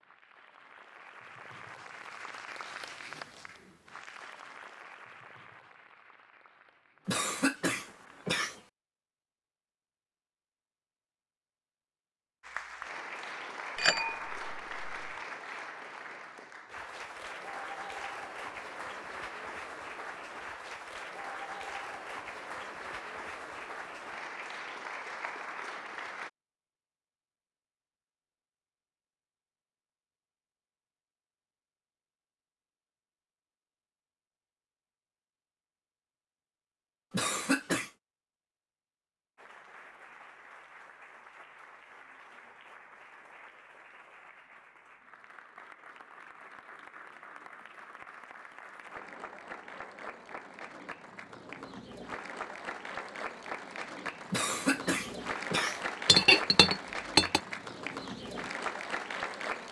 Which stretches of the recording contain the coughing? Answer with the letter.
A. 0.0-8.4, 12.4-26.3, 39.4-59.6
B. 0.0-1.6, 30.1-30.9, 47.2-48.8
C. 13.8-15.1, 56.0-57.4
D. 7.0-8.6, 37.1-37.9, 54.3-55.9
D.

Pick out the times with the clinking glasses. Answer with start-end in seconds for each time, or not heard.
13.8-15.1, 56.0-57.4.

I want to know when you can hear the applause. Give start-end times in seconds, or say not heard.
0.0-8.4, 12.4-26.3, 39.4-59.6.